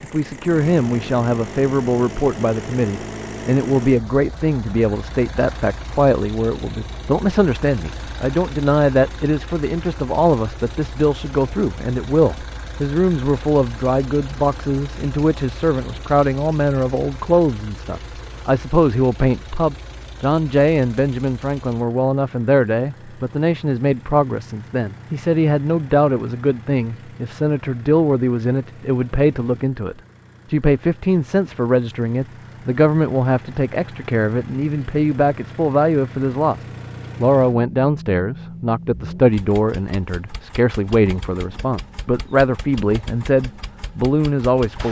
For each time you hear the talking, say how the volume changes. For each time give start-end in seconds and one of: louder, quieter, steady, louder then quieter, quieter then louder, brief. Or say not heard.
0.0-36.6 steady
37.2-44.8 steady.